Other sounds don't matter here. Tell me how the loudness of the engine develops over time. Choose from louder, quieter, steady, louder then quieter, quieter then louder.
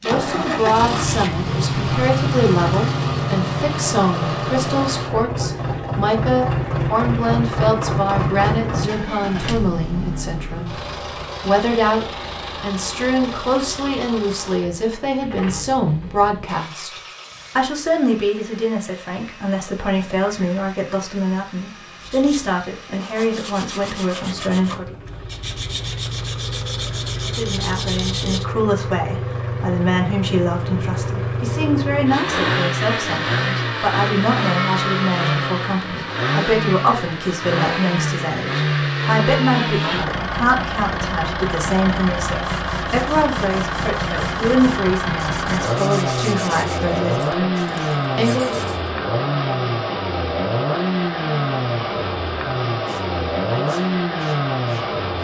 quieter then louder.